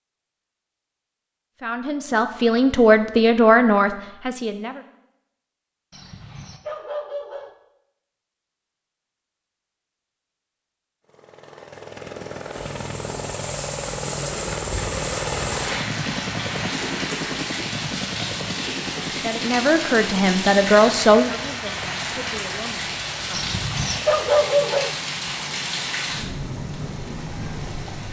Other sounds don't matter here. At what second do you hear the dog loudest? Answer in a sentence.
The volume of the dog peaks at 24 seconds.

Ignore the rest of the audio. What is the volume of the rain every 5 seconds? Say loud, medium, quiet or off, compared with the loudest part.
off, off, medium, loud, loud, loud.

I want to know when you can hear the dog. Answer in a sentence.
You can hear the dog from 5.9 to 7.5 s and from 23.3 to 24.9 s.